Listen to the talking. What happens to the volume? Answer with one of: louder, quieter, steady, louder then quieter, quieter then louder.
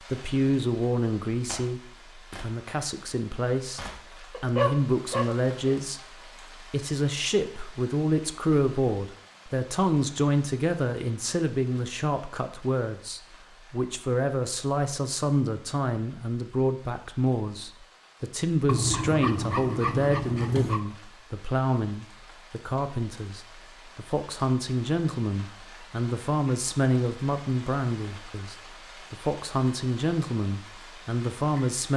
steady.